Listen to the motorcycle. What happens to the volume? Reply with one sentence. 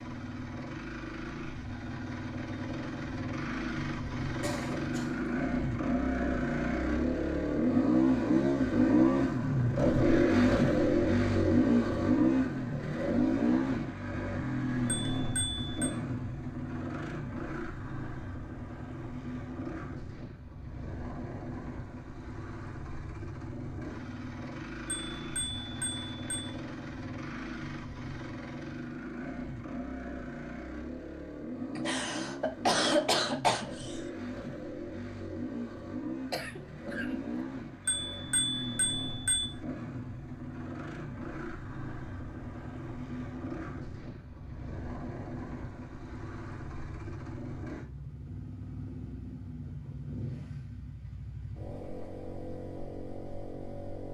The volume of the motorcycle goes down.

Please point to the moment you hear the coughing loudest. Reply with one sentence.
The volume of the coughing peaks at 33 seconds.